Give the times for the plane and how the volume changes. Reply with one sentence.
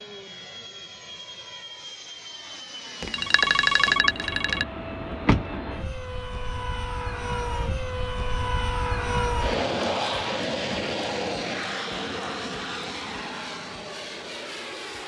The plane can be heard from 0.0 to 15.0 s, getting louder then quieter.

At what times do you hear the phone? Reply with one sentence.
The phone can be heard from 3.0 to 4.7 s.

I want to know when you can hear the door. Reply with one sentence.
The door can be heard from 4.2 to 5.5 s.